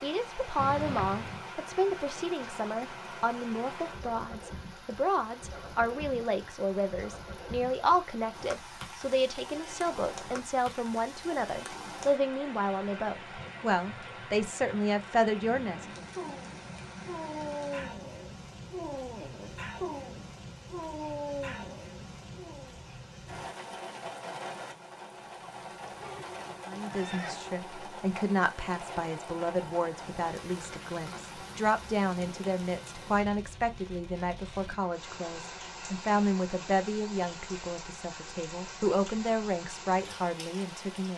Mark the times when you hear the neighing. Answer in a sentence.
The neighing can be heard from 0.6 to 1.4 s and from 25.9 to 27.4 s.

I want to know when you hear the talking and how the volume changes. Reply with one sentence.
You can hear the talking from 0.0 to 16.1 s, at a steady volume; and from 26.6 to 41.1 s, at a steady volume.